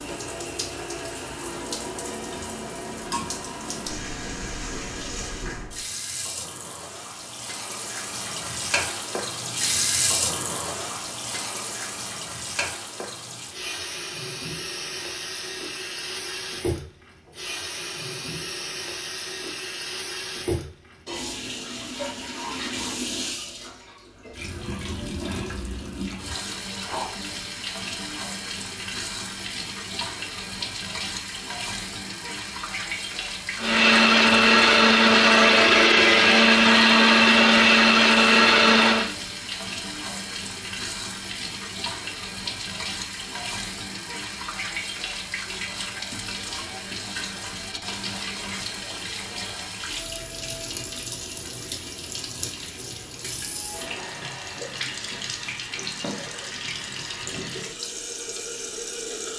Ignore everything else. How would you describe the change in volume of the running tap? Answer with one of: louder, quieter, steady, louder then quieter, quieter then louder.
steady.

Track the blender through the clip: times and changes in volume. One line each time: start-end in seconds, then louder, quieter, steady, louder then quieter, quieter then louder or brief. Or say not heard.
33.5-39.1 steady.